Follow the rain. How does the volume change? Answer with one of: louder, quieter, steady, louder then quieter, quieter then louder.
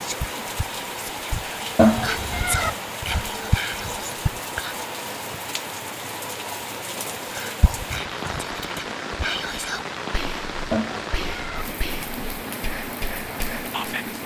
steady.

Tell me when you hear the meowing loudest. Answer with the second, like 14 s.
2 s.